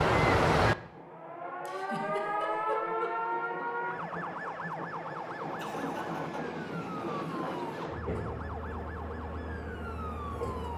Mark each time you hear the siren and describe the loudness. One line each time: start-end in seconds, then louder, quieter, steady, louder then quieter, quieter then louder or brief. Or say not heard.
0.0-10.7 quieter.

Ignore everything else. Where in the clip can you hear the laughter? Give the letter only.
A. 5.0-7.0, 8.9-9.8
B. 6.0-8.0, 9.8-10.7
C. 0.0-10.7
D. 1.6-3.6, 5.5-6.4
D.